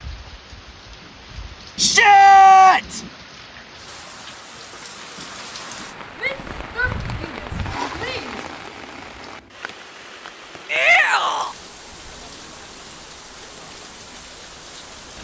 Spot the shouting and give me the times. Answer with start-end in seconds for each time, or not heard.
1.8-3.0, 6.2-8.4, 10.7-11.6.